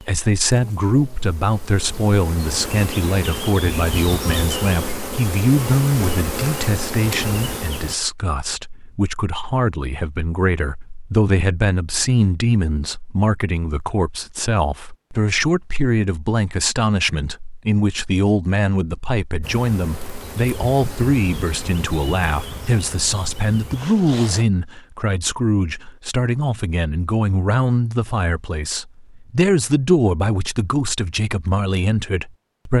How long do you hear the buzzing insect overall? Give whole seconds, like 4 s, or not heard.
13 s.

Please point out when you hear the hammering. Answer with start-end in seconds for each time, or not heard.
not heard.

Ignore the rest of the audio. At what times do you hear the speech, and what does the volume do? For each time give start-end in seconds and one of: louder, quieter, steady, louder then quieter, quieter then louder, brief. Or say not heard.
0.0-32.7 steady.